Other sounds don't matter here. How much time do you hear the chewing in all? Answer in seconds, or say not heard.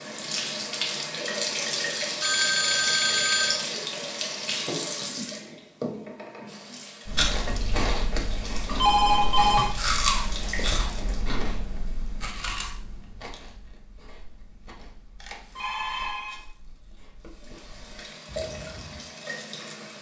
12 s.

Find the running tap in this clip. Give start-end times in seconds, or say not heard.
0.0-11.2, 17.2-19.9.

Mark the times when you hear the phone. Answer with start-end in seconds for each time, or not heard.
2.2-3.6, 8.7-9.7, 15.2-16.4.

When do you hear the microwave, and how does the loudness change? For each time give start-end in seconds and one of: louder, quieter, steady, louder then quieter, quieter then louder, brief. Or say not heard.
not heard.